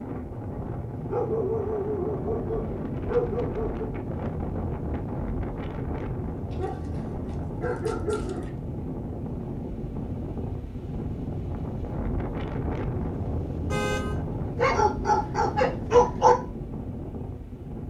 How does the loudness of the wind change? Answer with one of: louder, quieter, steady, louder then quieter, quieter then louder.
steady.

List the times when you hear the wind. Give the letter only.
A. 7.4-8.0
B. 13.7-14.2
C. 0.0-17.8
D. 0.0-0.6
C.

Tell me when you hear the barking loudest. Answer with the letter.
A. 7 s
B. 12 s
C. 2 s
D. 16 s
D.